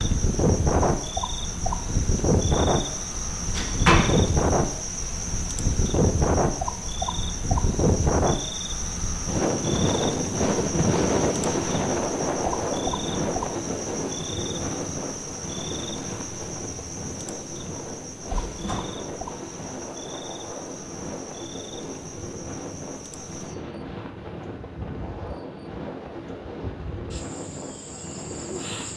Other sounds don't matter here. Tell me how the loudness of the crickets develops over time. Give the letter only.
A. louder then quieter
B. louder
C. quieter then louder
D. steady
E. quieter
E.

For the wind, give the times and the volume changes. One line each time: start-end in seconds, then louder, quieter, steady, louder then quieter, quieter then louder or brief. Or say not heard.
0.0-28.9 quieter.